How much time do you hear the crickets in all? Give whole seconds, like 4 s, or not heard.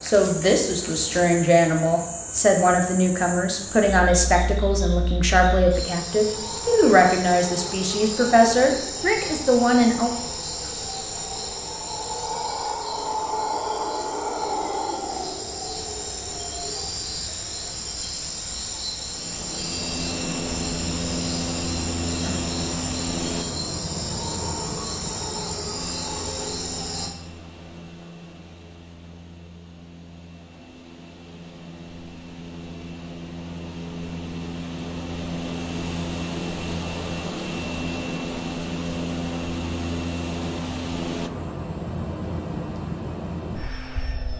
27 s.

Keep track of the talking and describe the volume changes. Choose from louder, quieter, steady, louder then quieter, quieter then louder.
steady.